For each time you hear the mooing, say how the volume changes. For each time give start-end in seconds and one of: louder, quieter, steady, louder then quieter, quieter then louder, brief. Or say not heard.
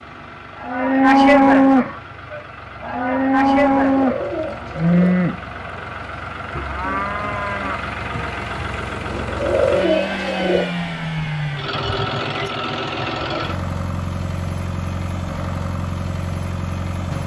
0.6-5.8 quieter then louder
6.5-7.8 brief.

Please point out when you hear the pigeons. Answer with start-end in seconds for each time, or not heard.
3.8-5.1, 9.1-10.7.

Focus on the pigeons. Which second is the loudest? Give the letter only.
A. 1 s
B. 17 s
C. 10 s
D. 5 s
C.